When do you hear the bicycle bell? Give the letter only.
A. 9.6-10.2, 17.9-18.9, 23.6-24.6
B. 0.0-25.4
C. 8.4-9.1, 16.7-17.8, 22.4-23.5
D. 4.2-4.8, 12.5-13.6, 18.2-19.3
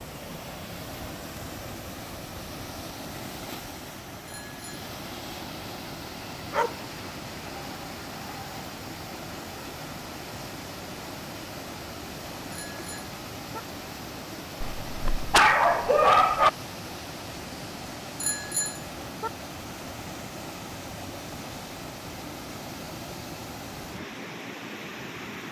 D.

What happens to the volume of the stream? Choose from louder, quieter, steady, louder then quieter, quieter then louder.
steady.